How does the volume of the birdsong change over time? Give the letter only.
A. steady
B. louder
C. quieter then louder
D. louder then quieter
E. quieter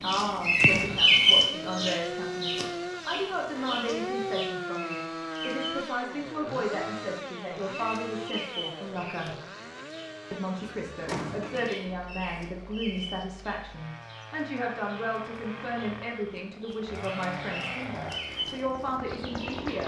C.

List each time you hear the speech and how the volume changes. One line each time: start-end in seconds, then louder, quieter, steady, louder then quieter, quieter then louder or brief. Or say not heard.
0.0-9.3 steady
10.3-19.8 steady.